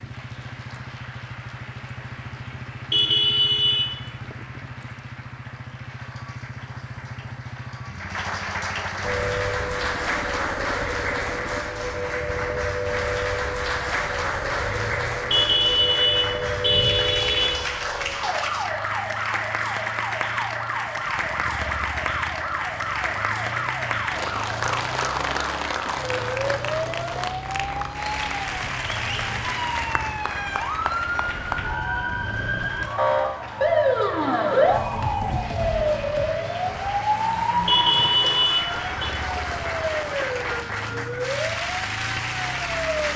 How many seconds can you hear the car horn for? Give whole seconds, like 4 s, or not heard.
5 s.